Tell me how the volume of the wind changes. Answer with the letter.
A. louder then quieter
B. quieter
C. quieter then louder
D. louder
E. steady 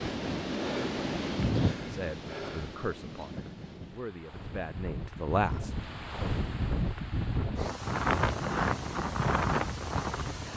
C.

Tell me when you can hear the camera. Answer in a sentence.
The camera can't be heard in this clip.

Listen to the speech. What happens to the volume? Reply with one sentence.
The loudness of the speech goes down, then up.